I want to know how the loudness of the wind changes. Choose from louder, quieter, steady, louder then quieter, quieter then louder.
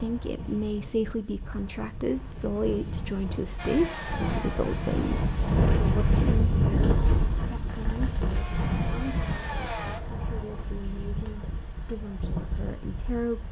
louder then quieter.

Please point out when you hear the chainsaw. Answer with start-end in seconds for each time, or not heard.
3.5-5.3, 8.3-10.0.